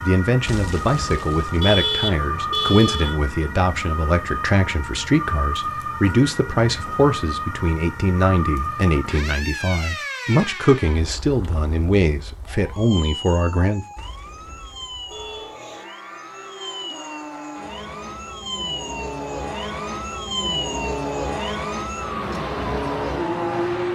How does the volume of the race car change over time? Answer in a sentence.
The loudness of the race car goes up.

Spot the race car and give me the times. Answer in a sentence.
You can hear the race car from 15.1 to 23.8 s.